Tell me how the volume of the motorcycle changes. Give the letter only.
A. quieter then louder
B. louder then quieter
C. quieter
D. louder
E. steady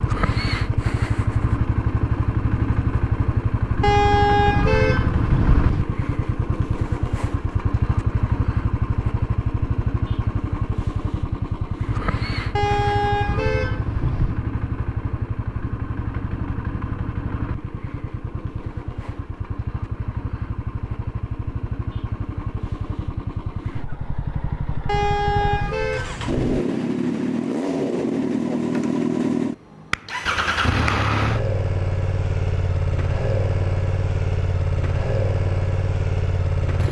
A.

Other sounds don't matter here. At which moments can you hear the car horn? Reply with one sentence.
You can hear the car horn from 3.8 to 5.8 s, from 12.6 to 14.4 s and from 24.9 to 26.6 s.